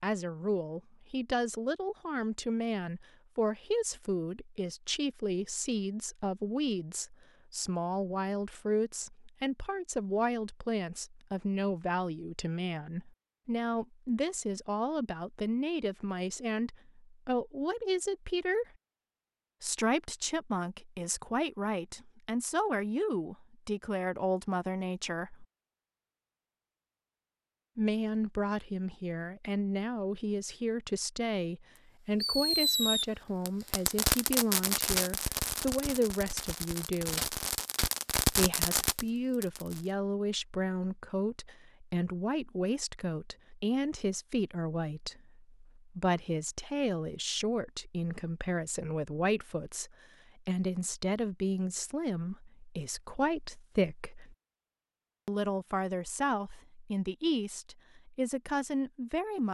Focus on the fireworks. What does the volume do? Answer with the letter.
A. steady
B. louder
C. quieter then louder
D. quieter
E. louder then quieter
C.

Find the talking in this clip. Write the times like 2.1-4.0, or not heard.
0.0-18.6, 19.6-25.4, 27.8-37.4, 38.3-54.4, 55.2-59.4.